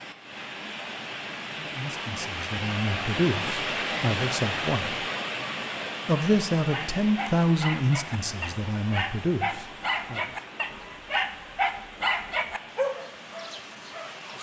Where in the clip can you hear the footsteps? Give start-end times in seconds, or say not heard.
not heard.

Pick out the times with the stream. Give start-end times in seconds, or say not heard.
0.0-14.3.